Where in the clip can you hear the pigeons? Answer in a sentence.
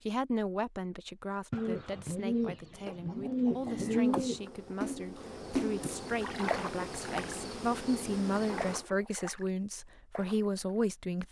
The pigeons can be heard from 1.5 to 4.4 s.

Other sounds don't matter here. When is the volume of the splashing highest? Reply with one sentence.
The volume of the splashing peaks at 6 seconds.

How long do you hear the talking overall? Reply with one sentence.
You can hear the talking for 11 seconds altogether.